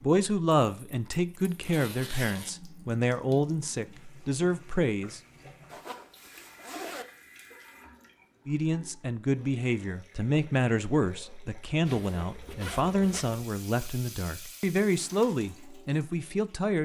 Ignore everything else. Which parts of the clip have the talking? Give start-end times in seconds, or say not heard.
0.0-5.2, 8.4-16.8.